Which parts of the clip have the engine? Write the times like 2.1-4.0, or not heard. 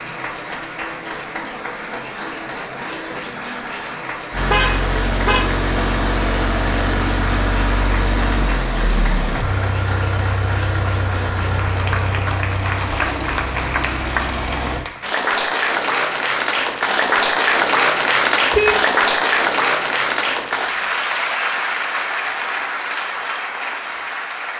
4.3-14.8.